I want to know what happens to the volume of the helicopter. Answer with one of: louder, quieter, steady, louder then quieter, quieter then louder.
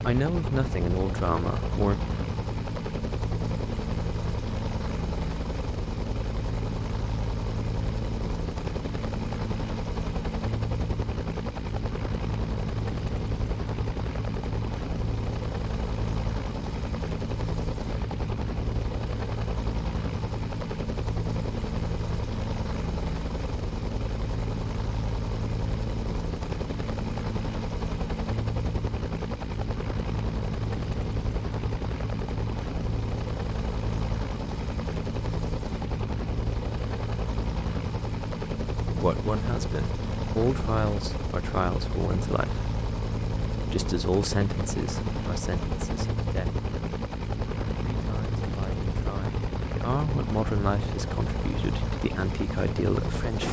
steady.